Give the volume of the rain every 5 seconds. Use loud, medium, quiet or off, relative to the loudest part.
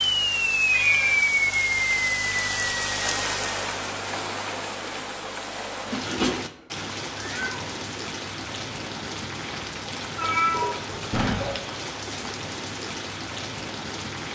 loud, medium, medium.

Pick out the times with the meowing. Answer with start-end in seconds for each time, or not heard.
0.7-1.2, 5.9-7.6, 10.2-11.6.